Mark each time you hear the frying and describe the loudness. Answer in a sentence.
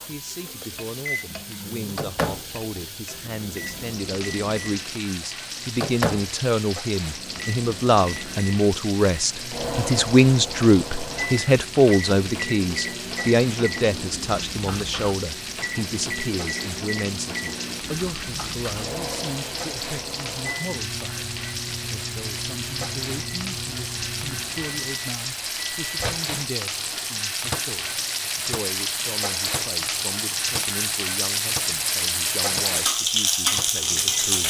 The frying can be heard from 0.0 to 34.4 s, getting louder.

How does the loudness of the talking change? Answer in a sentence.
The loudness of the talking goes up, then down.